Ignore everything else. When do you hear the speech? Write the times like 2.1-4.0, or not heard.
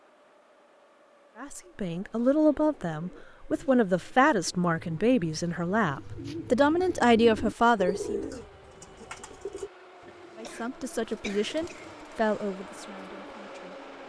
1.4-8.2, 10.3-13.8.